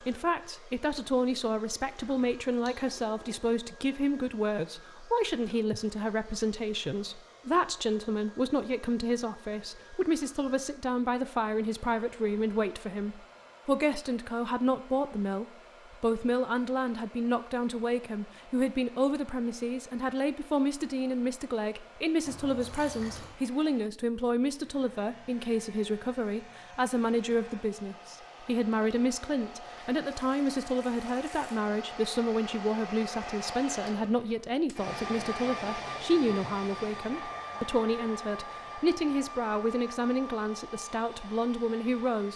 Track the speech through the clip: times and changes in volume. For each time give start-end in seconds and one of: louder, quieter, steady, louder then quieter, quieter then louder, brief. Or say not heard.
0.0-42.3 steady.